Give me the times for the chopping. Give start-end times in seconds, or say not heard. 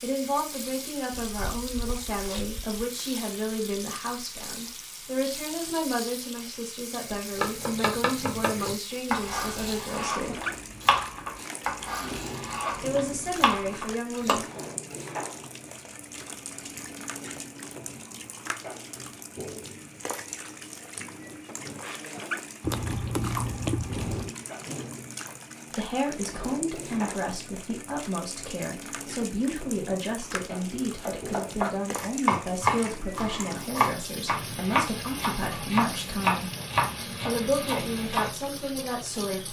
7.3-14.4, 31.0-38.3.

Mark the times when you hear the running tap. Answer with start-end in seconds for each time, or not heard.
0.0-39.4.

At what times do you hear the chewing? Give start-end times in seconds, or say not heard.
1.1-2.6, 22.6-24.4.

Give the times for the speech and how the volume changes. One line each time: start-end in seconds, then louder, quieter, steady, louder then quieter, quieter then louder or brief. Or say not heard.
0.0-10.4 steady
12.8-14.4 brief
25.8-36.5 steady
37.2-39.4 brief.